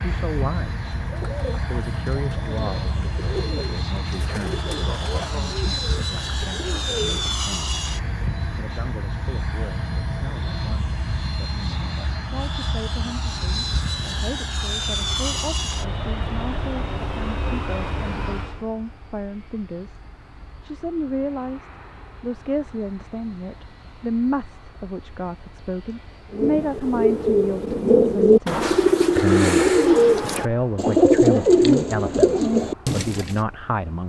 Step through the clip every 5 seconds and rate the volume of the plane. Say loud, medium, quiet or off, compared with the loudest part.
loud, loud, loud, loud, quiet, quiet, quiet.